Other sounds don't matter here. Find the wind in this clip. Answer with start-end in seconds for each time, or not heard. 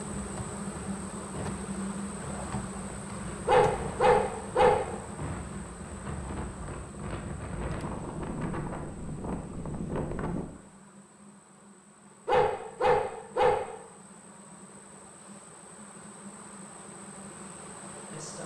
0.0-10.4.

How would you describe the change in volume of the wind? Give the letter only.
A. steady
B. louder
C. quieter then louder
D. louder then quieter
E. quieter
B.